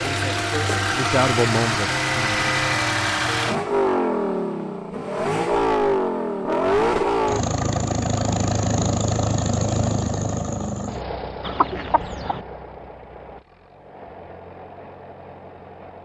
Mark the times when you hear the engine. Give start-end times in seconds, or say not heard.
0.0-16.0.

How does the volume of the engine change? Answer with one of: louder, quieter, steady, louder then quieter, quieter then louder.
quieter.